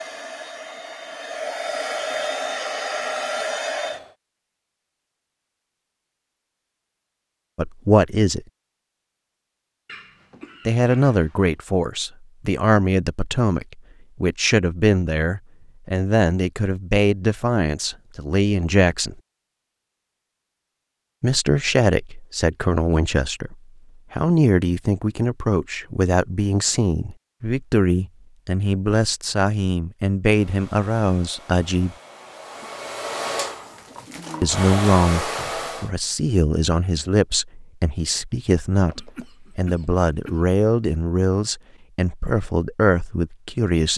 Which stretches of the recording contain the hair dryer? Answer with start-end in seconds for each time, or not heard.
0.0-4.1, 30.2-35.9.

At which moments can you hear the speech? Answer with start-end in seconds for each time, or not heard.
7.5-8.4, 10.7-19.1, 21.2-31.9, 34.4-43.9.